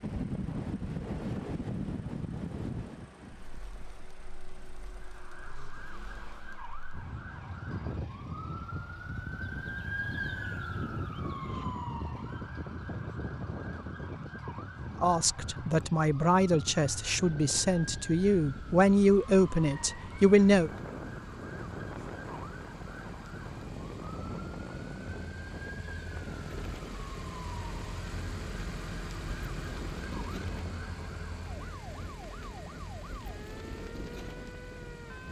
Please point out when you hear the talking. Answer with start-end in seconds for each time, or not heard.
15.0-20.7.